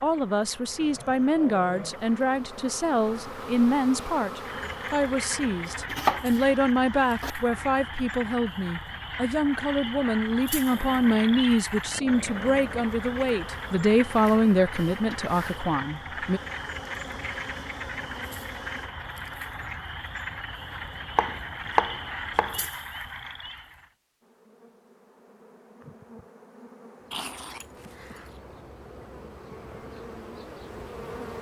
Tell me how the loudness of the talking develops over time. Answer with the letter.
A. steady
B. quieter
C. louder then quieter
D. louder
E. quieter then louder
A.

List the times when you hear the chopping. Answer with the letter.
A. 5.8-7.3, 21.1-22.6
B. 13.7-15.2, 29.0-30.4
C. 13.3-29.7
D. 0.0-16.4
A.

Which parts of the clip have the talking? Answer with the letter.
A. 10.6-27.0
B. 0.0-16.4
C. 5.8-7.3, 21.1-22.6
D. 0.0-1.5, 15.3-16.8
B.